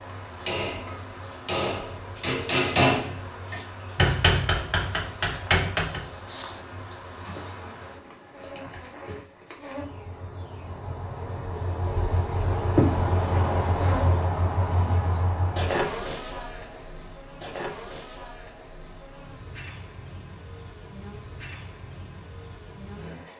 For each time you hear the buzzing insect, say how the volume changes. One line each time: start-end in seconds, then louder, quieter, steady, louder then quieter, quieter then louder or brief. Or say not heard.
0.0-23.3 louder then quieter.